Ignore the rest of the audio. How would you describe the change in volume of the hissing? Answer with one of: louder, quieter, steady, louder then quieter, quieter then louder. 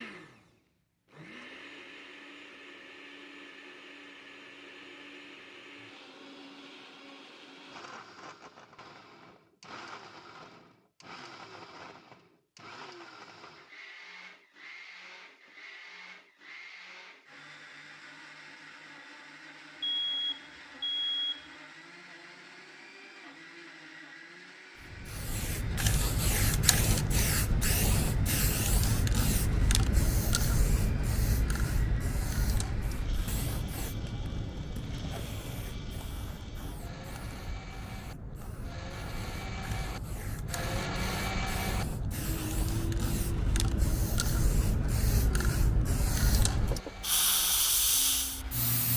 quieter then louder.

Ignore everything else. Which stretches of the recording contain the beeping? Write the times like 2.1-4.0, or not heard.
19.8-21.5.